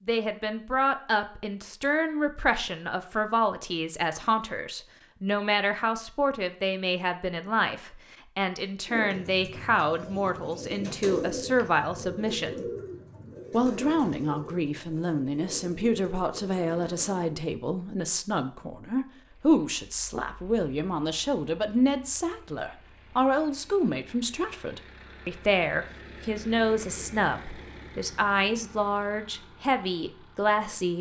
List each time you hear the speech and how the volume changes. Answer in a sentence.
You can hear the speech from 0.1 to 12.7 s, at a steady volume; and from 13.5 to 30.9 s, at a steady volume.